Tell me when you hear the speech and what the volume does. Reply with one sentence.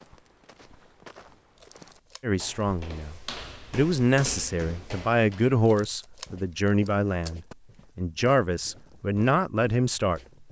You can hear the speech from 2.2 to 10.2 s, at a steady volume.